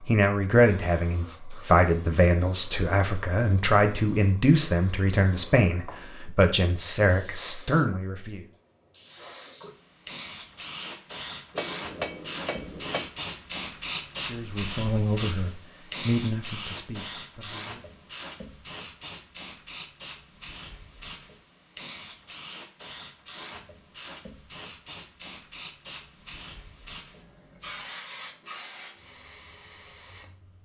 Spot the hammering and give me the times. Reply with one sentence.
You can hear the hammering from 11.6 to 13.1 s.